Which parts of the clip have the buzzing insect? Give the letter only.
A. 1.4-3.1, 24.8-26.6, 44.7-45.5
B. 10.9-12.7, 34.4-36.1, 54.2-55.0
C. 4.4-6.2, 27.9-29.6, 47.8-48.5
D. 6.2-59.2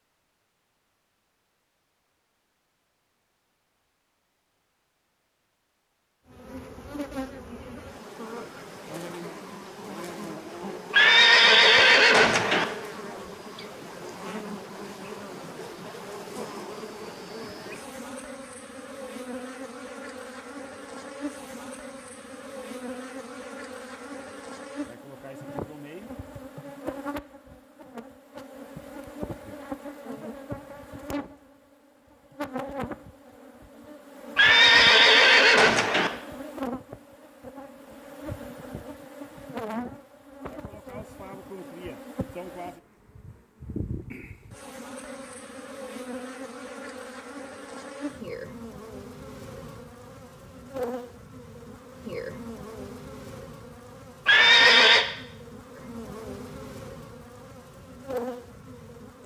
D.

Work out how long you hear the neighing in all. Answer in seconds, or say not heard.
4 s.